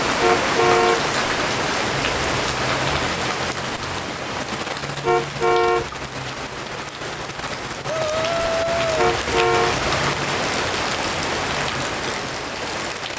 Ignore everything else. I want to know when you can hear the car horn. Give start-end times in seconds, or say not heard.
0.2-1.1, 5.0-6.3, 8.9-9.8.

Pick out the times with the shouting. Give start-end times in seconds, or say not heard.
7.8-8.9.